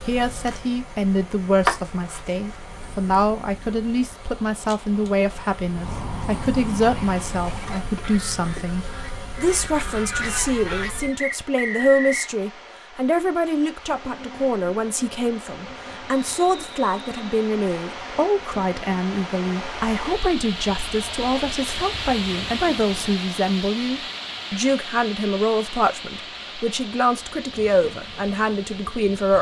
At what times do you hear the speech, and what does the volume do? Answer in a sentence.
You can hear the speech from 0.1 to 29.3 s, at a steady volume.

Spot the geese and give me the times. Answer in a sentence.
The geese can be heard from 5.7 to 11.2 s.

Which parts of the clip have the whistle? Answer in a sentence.
You can hear the whistle from 11.2 to 12.3 s and from 16.1 to 17.2 s.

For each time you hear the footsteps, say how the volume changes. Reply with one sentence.
You can't hear the footsteps here.